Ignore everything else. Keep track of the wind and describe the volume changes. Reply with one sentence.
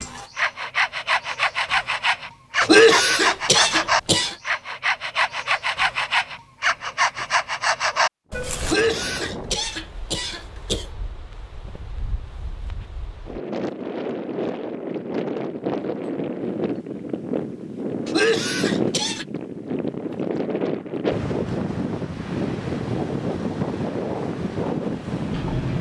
The loudness of the wind goes up.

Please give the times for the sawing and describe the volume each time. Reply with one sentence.
The sawing can be heard from 0.0 to 8.8 s, at a steady volume.